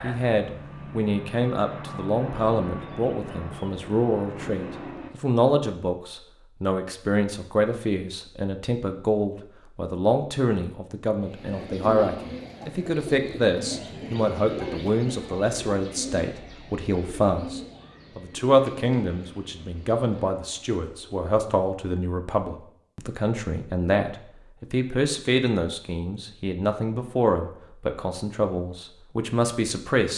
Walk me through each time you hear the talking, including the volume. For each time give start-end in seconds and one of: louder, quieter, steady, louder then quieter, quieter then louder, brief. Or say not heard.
0.0-30.1 steady.